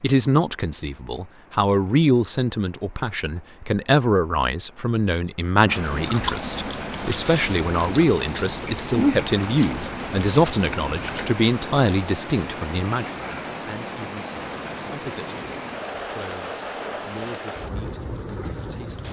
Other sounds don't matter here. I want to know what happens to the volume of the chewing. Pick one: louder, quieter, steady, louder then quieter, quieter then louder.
louder then quieter.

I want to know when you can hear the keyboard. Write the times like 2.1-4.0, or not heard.
not heard.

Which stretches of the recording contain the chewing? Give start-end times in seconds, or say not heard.
5.7-11.3.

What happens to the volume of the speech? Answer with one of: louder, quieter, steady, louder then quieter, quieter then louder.
quieter.